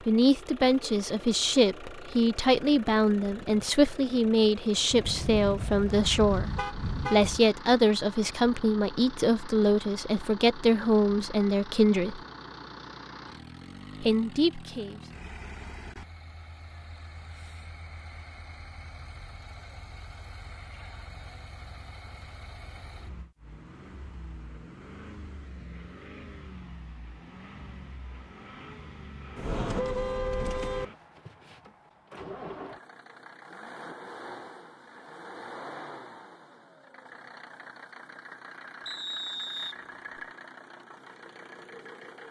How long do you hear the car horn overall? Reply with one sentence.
The car horn can be heard for 4 seconds in total.